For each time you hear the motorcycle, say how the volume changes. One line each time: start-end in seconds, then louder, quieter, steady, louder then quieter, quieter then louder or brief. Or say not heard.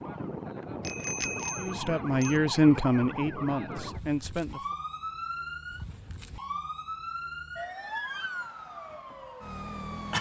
not heard.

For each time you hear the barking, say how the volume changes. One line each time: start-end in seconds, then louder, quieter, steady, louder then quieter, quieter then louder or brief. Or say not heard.
not heard.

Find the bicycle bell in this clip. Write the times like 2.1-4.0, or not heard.
0.8-2.4.